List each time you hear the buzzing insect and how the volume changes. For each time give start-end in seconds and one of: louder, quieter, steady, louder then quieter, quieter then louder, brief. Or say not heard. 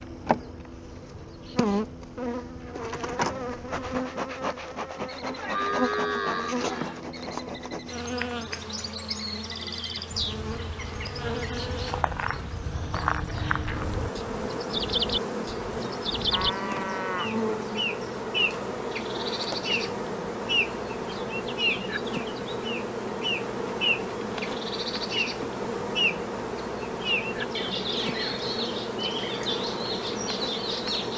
0.0-31.1 steady.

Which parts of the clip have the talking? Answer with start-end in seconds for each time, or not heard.
not heard.